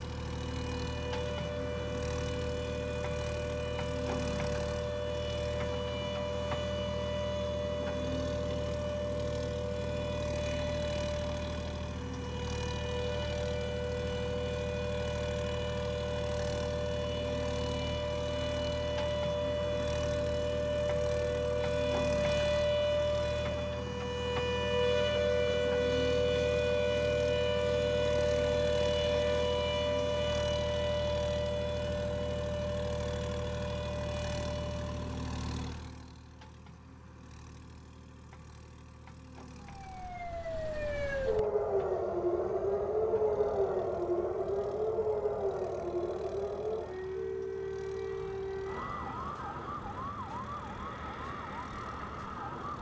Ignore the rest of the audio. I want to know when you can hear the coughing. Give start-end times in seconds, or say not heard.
not heard.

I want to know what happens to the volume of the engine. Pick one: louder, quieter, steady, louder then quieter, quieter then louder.
quieter.